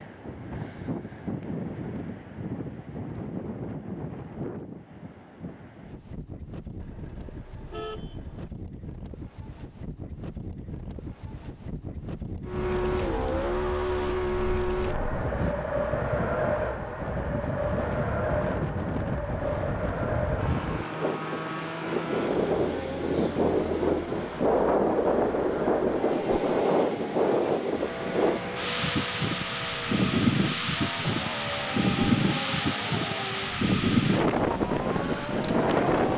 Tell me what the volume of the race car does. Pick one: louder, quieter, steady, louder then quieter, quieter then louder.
quieter.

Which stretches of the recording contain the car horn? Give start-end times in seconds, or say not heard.
6.8-8.5.